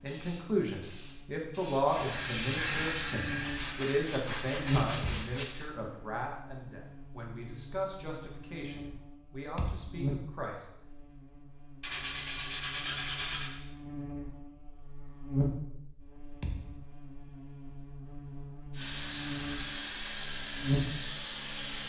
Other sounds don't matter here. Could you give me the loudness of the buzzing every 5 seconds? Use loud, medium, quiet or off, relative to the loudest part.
loud, quiet, medium, loud, loud.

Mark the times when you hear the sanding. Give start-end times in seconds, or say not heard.
3.4-5.5, 11.8-13.6.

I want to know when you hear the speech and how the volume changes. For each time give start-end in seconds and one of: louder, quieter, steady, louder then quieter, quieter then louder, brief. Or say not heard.
0.0-10.7 quieter.